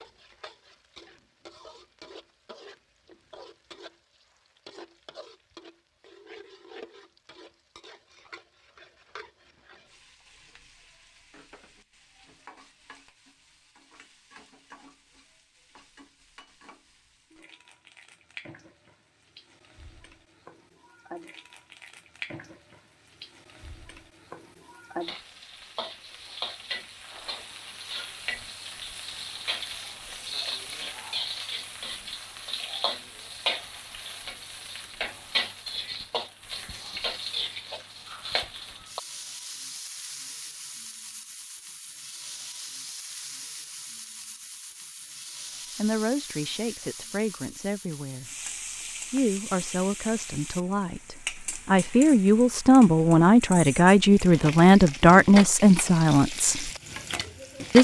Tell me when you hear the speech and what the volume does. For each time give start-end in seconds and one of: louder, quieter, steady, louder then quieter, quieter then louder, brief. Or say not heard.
45.8-48.3 brief
49.1-56.7 louder.